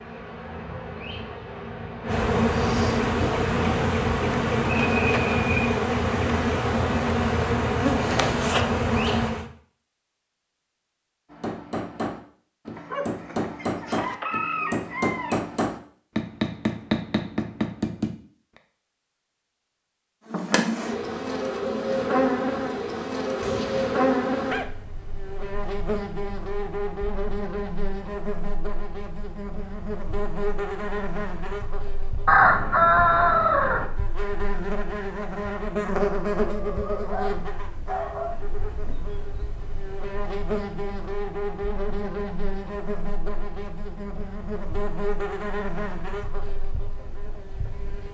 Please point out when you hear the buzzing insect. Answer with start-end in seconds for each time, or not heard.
0.0-9.5, 20.2-48.0.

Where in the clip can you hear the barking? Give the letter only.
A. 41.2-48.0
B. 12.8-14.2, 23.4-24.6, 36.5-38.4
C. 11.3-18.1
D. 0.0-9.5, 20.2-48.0
B.